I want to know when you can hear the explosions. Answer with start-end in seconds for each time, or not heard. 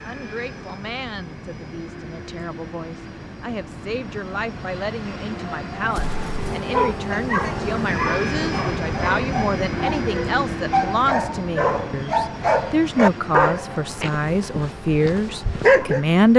5.8-6.5.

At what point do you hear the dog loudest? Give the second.
16 s.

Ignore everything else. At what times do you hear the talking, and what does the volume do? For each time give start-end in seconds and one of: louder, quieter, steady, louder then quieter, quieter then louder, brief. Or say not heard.
0.0-16.3 louder.